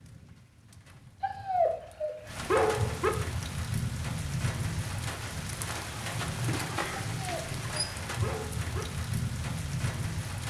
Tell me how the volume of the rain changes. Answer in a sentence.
The volume of the rain goes up.